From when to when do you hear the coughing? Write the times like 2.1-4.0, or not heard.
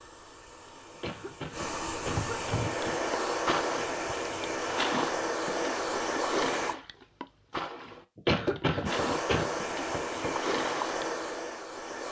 0.9-3.0, 8.2-9.6.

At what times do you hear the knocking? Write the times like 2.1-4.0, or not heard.
2.1-2.8, 8.4-10.3.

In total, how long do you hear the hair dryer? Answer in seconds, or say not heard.
10 s.